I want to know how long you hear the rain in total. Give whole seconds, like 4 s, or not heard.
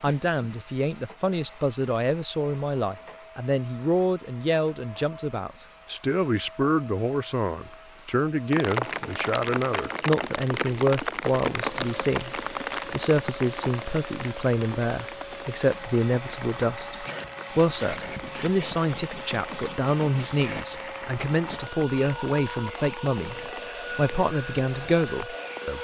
17 s.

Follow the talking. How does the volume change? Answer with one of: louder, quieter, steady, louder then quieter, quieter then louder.
steady.